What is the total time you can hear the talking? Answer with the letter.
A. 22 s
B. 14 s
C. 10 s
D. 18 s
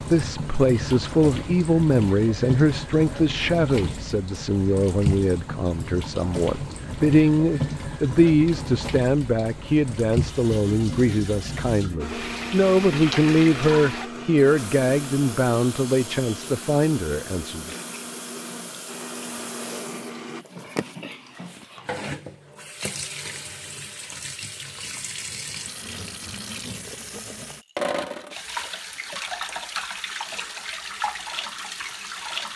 D.